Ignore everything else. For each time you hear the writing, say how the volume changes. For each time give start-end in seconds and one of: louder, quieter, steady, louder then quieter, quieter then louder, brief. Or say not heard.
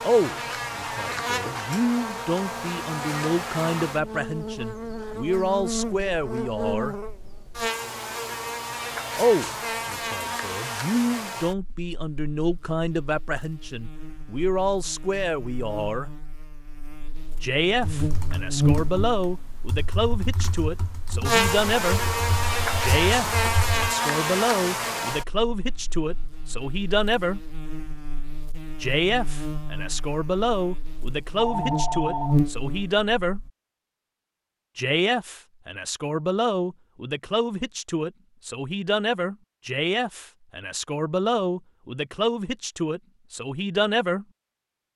not heard.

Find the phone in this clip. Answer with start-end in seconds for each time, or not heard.
31.4-32.4.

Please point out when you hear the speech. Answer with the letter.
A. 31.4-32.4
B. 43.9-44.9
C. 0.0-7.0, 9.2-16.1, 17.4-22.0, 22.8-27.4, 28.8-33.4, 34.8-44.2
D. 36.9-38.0
C.